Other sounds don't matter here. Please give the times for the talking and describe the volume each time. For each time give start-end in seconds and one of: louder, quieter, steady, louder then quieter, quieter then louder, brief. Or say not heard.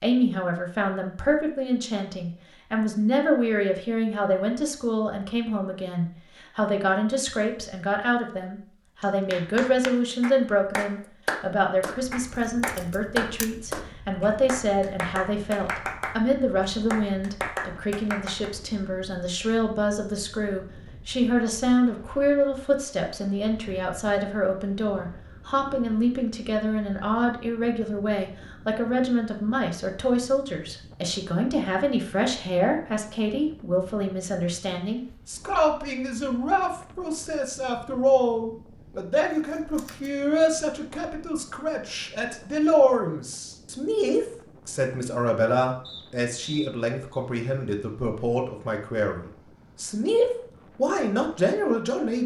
0.0-52.2 steady.